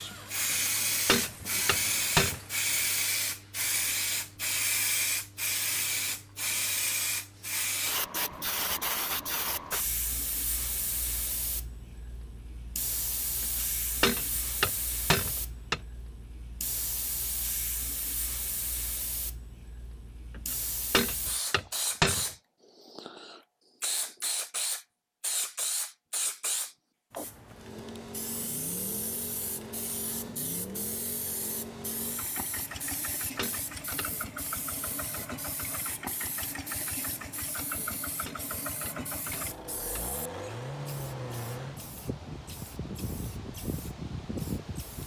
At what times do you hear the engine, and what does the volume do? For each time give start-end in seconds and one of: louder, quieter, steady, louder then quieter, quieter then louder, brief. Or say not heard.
0.0-2.6 brief
27.5-41.9 steady.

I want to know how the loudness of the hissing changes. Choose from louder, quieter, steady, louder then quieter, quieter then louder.
quieter.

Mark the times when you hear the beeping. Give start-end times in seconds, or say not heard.
not heard.